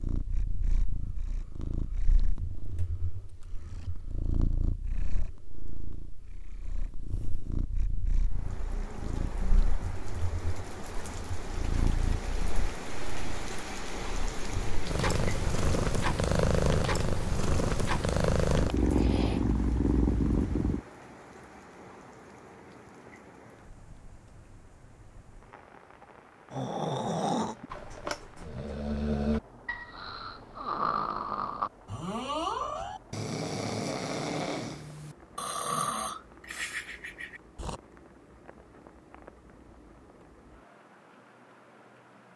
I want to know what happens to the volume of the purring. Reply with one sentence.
The loudness of the purring goes up.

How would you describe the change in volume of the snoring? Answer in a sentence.
The loudness of the snoring stays about the same.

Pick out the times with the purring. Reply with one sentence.
The purring can be heard from 0.0 to 20.8 s.